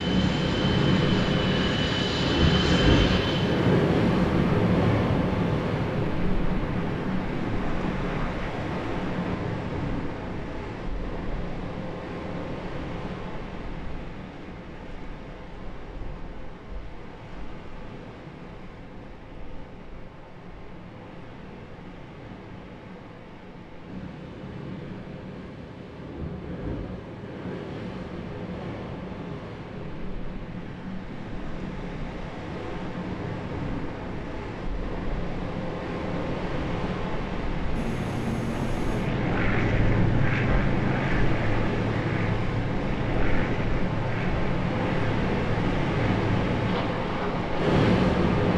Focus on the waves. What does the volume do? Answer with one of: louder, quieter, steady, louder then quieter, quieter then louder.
quieter then louder.